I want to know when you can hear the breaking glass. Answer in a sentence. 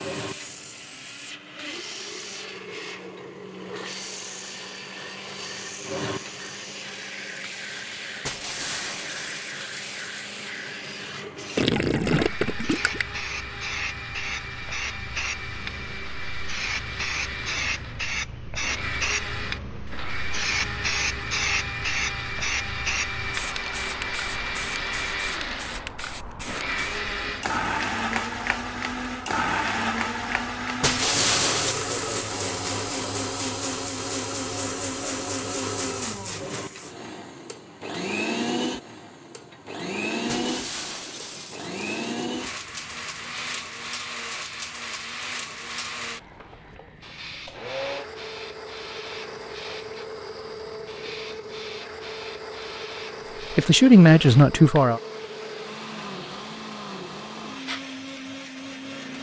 The breaking glass can be heard from 8.2 to 10.2 s, from 30.8 to 31.8 s and from 40.2 to 42.0 s.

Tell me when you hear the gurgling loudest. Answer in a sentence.
The volume of the gurgling peaks at 12 seconds.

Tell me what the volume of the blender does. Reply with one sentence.
The volume of the blender goes up, then down.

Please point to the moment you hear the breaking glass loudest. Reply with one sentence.
The volume of the breaking glass peaks at 31 seconds.